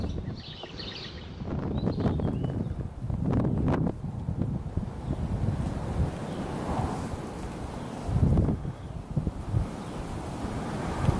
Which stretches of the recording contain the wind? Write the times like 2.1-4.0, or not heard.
0.0-11.1.